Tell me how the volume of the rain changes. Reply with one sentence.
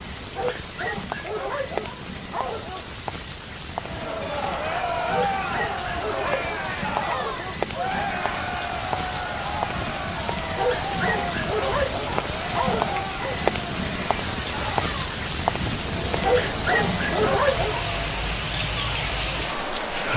The loudness of the rain goes up.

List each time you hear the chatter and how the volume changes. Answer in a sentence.
The chatter can be heard from 3.8 to 20.1 s, getting quieter.